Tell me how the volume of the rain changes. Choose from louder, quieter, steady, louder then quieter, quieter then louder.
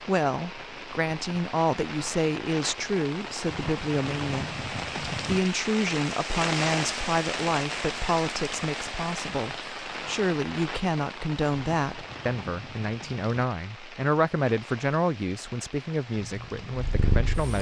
louder then quieter.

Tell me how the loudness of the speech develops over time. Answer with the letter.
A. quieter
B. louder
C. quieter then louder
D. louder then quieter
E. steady
E.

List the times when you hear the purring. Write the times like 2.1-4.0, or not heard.
16.1-17.5.